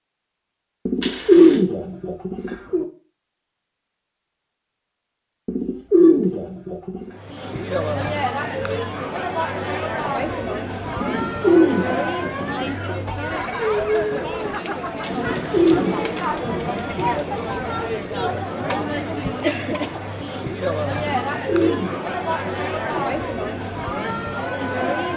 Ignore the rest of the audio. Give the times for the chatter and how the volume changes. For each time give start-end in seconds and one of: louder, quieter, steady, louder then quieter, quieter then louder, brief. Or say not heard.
7.1-25.1 steady.